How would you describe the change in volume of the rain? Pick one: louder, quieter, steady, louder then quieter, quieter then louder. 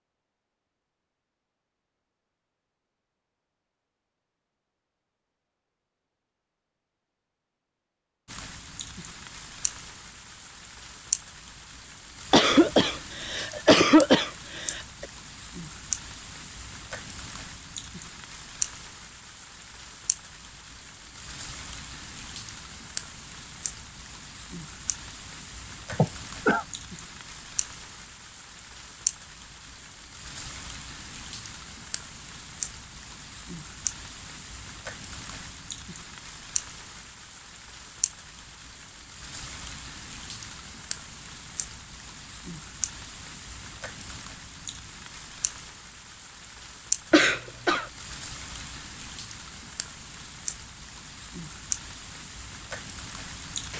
steady.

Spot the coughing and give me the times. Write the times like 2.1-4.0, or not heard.
12.3-15.1, 25.9-26.6, 47.1-47.9.